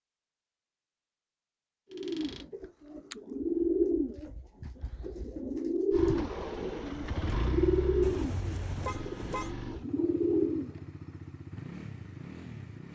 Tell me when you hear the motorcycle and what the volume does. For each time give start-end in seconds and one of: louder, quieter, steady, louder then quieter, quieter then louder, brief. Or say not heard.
5.9-12.8 quieter.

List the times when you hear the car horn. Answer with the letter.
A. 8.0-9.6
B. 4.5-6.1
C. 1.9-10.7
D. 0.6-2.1
A.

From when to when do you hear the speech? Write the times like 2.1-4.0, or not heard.
not heard.